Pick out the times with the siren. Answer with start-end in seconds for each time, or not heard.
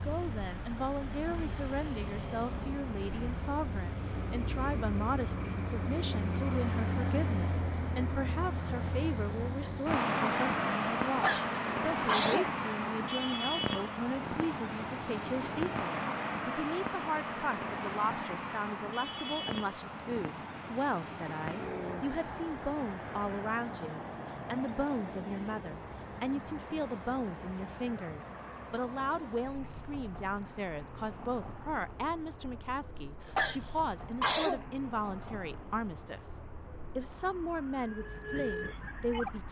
37.6-39.4.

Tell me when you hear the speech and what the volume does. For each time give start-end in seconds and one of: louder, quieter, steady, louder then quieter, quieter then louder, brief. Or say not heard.
0.0-39.4 steady.